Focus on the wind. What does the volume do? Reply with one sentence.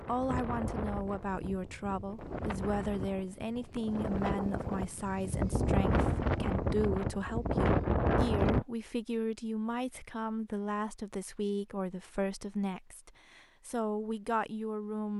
The loudness of the wind goes up.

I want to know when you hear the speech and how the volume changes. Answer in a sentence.
The speech can be heard from 0.0 to 15.1 s, at a steady volume.